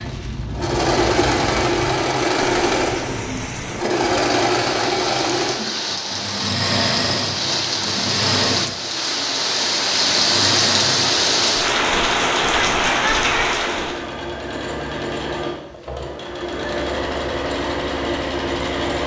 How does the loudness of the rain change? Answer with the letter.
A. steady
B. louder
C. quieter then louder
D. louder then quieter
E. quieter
B.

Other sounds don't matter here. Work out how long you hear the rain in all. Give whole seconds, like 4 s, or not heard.
14 s.